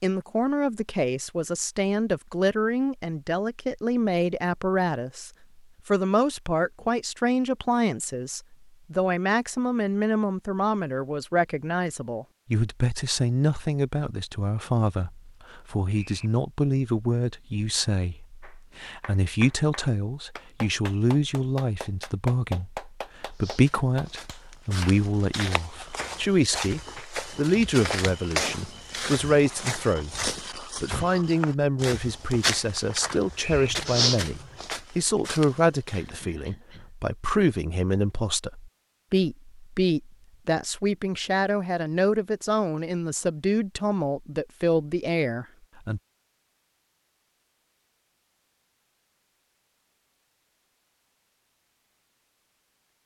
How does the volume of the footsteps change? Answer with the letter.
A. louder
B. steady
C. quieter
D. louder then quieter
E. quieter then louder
A.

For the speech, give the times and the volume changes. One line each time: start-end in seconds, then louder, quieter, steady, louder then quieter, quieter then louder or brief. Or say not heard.
0.0-46.0 steady.